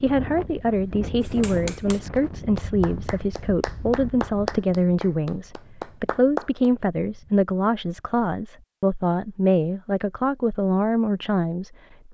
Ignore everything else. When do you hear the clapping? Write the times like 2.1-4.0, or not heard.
1.2-6.7.